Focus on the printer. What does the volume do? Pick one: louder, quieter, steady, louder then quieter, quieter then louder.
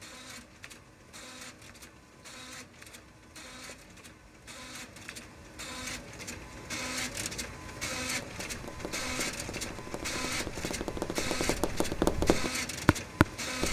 louder.